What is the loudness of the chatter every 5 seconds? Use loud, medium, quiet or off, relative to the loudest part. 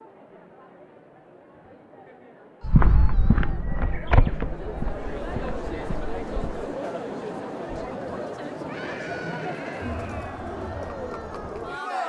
medium, loud, loud.